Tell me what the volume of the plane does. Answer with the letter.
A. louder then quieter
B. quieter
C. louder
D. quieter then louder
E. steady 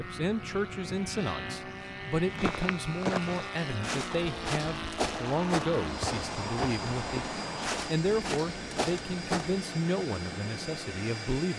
E.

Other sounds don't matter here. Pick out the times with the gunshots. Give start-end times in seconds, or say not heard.
4.1-7.8.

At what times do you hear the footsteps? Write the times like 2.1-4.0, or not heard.
2.2-9.6.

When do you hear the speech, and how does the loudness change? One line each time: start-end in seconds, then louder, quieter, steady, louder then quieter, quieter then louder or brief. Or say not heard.
0.0-11.5 steady.